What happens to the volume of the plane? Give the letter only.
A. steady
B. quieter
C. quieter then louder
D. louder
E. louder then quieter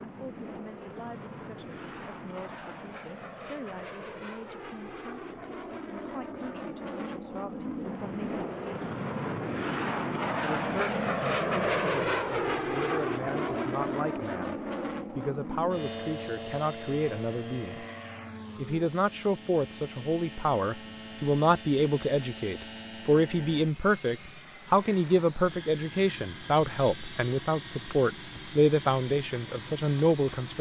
E.